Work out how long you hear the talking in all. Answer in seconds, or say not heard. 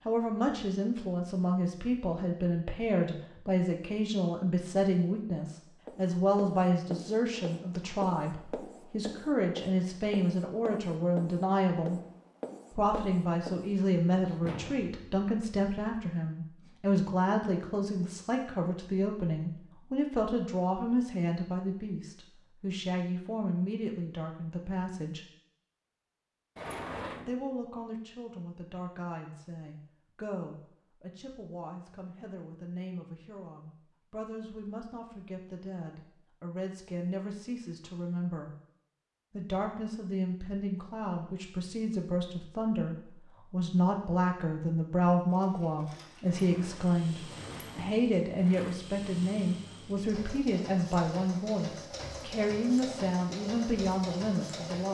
51 s.